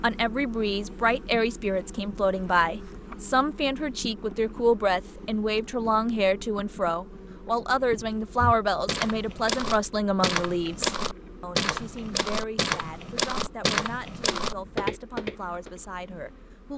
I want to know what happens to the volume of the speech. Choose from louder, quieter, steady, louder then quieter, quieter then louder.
quieter.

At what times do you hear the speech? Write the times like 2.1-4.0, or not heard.
0.0-16.7.